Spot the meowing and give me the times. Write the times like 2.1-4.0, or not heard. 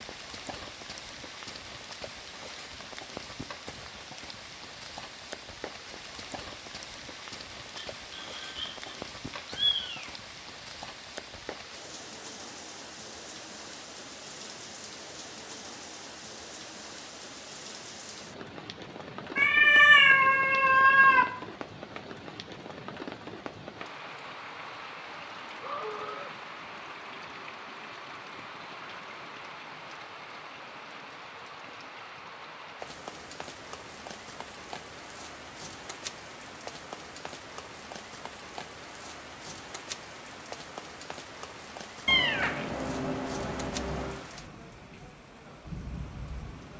7.8-10.1, 19.4-21.2, 42.0-44.2.